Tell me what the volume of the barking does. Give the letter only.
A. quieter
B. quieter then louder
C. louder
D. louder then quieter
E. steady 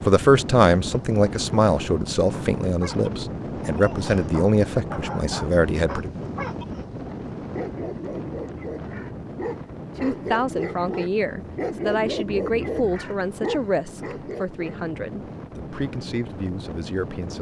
C.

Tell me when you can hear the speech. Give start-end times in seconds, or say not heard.
0.0-6.1, 10.0-17.3.